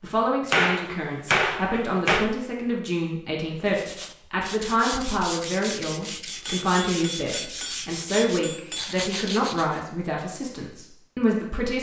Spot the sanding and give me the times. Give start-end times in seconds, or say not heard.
3.6-9.8.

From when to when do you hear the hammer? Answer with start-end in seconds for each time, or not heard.
0.5-2.3, 6.2-8.9.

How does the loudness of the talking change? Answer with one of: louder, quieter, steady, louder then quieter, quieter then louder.
steady.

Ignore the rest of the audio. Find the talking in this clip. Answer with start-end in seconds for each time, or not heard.
0.0-11.7.